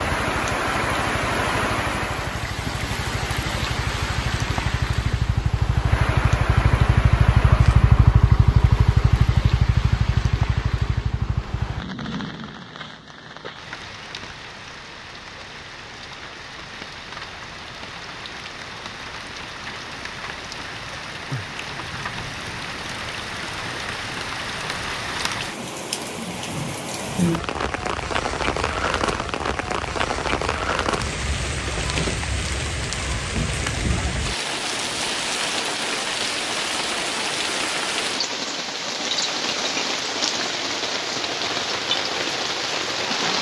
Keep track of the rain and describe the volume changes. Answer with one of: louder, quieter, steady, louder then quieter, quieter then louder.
quieter then louder.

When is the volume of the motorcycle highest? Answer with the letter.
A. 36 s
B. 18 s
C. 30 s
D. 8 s
D.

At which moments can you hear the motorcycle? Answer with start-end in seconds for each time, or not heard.
0.2-11.9.